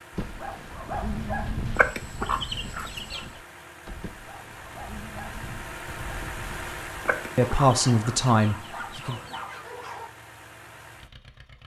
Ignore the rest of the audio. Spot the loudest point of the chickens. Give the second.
2 s.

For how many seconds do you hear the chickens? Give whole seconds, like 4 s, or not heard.
4 s.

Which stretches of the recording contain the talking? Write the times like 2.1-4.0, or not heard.
7.3-9.2.